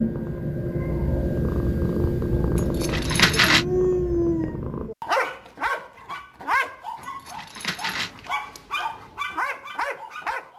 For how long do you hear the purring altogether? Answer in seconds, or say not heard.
5 s.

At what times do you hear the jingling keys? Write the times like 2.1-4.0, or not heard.
2.5-3.6, 7.0-8.8.